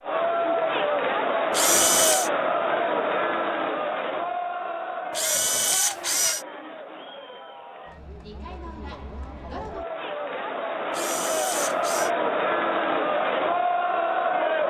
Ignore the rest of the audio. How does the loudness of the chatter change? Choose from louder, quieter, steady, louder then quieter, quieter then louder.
quieter then louder.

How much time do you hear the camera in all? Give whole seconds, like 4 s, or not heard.
3 s.